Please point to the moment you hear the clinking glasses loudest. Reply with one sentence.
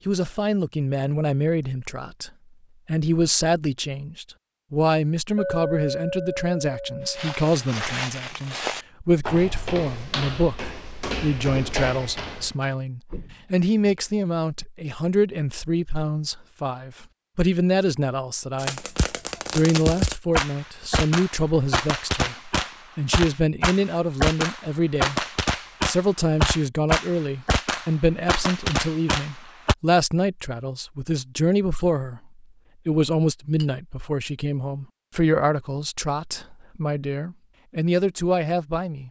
The loudest moment of the clinking glasses is at 6 seconds.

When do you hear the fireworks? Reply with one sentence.
The fireworks can be heard from 18.6 to 29.8 s.